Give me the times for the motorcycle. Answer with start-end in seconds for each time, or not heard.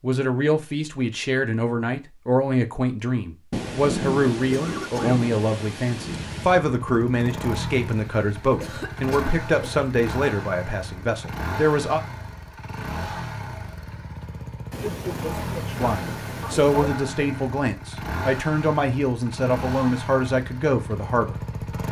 6.1-21.8.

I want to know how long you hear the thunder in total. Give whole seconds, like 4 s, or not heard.
3 s.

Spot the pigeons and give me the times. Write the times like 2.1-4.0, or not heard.
not heard.